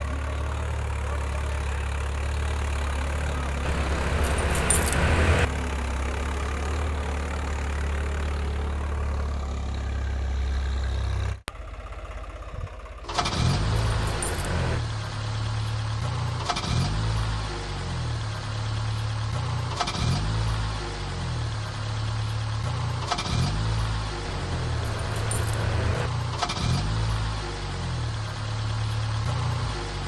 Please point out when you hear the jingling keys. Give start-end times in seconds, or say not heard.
3.6-5.5, 13.2-14.8, 24.2-26.1.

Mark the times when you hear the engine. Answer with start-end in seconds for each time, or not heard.
0.0-30.0.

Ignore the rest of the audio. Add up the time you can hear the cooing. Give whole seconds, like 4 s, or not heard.
not heard.